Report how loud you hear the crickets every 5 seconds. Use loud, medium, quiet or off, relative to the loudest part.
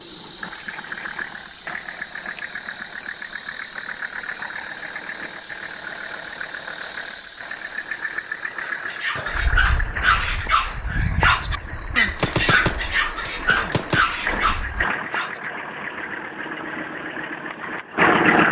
loud, loud, quiet, off.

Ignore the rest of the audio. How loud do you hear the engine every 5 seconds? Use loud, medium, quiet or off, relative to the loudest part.
medium, medium, medium, loud.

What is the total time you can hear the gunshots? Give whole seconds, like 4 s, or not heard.
2 s.